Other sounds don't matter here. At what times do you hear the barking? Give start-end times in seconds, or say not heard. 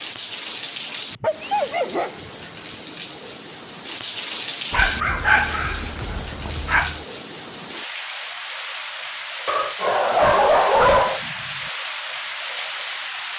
1.1-2.8, 4.7-7.0, 9.4-11.2.